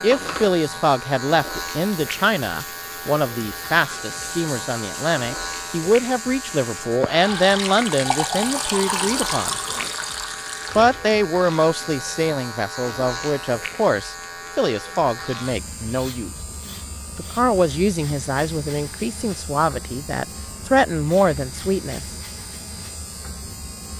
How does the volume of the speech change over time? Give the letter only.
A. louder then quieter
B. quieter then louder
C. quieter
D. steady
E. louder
D.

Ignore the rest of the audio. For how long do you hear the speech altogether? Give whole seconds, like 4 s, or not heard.
20 s.